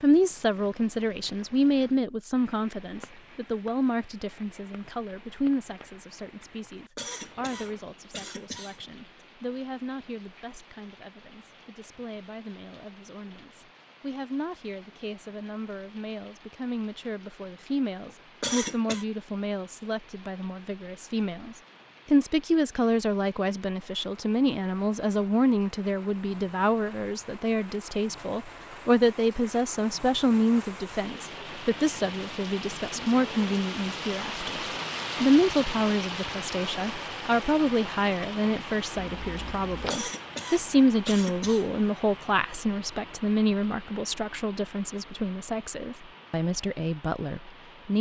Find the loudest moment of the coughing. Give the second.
19 s.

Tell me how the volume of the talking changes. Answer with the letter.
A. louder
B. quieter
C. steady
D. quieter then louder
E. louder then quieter
D.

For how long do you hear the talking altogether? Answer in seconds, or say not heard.
47 s.